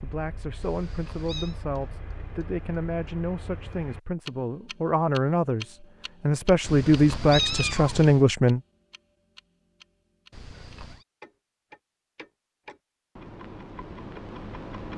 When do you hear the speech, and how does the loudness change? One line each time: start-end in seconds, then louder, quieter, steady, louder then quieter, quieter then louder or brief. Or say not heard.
0.0-8.6 louder.